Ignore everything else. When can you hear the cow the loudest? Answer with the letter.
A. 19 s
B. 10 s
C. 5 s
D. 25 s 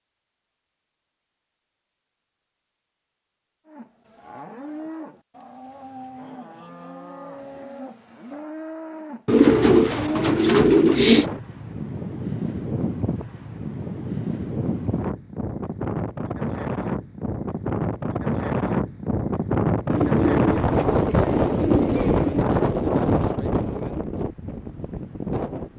B.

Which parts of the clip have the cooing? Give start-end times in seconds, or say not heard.
9.2-11.2, 19.9-22.5.